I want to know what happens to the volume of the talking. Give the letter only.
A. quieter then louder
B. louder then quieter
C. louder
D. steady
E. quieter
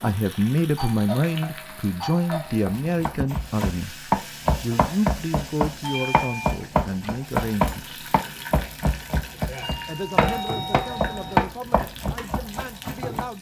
E.